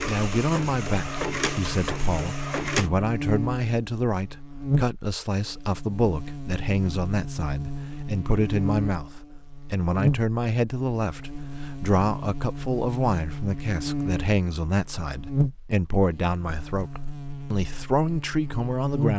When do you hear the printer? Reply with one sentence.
You can hear the printer from 0.0 to 2.9 s.